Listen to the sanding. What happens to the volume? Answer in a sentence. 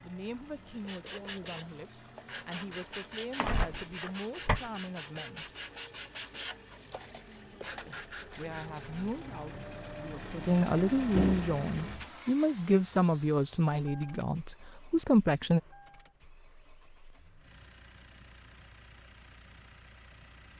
The loudness of the sanding stays about the same.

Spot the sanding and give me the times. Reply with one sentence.
The sanding can be heard from 0.7 to 9.1 s.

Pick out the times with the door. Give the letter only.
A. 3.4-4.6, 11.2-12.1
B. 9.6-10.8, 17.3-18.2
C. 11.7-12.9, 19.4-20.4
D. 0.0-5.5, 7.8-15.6
A.